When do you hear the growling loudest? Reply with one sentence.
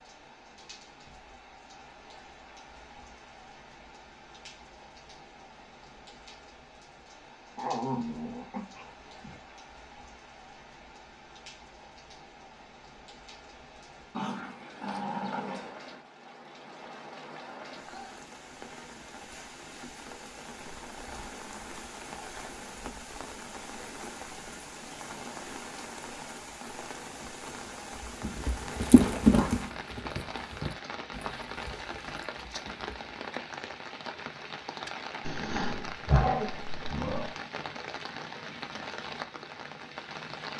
The volume of the growling peaks at 36 seconds.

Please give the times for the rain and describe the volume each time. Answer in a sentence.
You can hear the rain from 0.0 to 40.5 s, getting louder.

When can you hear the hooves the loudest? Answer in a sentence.
The loudest moment of the hooves is at 29 seconds.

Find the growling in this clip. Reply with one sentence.
The growling can be heard from 7.5 to 9.4 s, from 14.1 to 15.8 s and from 35.2 to 37.4 s.